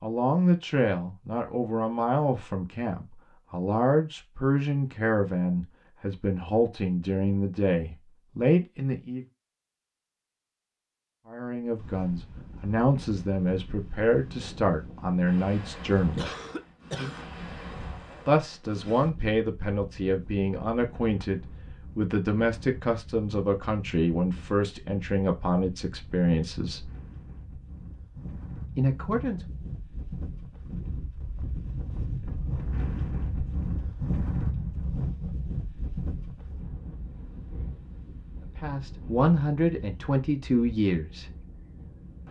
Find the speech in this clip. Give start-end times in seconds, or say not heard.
0.0-9.2, 11.2-16.3, 18.2-26.9, 28.8-29.4, 38.5-41.3.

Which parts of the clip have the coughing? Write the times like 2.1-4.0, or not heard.
16.1-17.3.